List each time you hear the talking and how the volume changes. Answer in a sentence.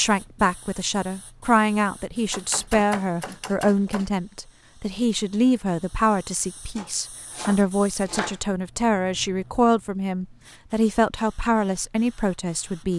The talking can be heard from 0.0 to 12.9 s, at a steady volume.